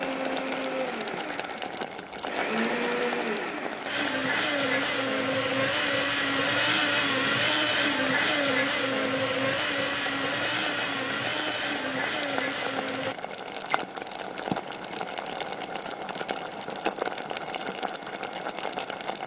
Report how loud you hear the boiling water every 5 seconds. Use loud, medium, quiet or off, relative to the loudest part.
loud, medium, loud, loud.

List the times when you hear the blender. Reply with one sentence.
The blender can be heard from 0.0 to 13.2 s.